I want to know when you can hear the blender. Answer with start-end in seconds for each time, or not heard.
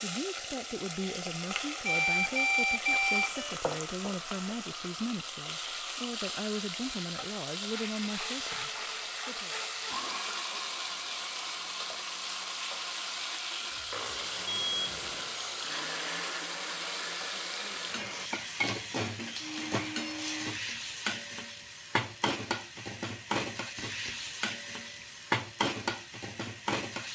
7.7-20.6.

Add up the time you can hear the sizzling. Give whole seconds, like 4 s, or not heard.
27 s.